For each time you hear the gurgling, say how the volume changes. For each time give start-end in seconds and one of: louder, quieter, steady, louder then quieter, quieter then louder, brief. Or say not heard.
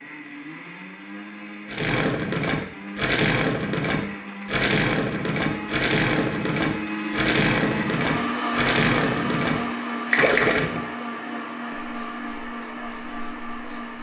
1.6-10.8 steady.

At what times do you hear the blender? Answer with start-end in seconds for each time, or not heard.
0.0-13.9.